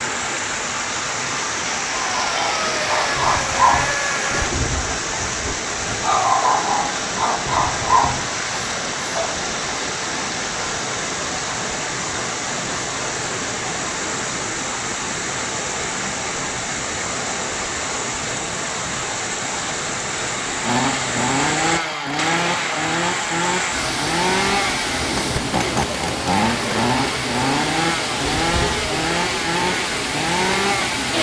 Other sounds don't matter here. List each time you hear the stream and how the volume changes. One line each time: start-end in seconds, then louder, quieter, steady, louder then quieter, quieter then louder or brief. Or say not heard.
0.0-31.1 steady.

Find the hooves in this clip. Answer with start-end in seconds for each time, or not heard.
not heard.